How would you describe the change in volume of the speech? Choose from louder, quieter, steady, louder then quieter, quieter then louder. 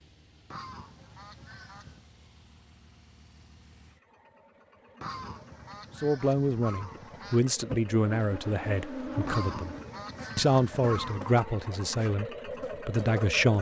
steady.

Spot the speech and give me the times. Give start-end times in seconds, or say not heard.
6.0-9.8, 10.3-13.5.